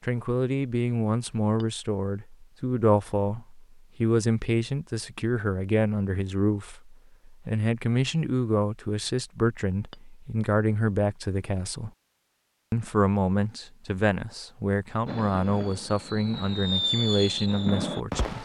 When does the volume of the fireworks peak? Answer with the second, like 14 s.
17 s.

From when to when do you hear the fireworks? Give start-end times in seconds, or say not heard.
15.1-18.4.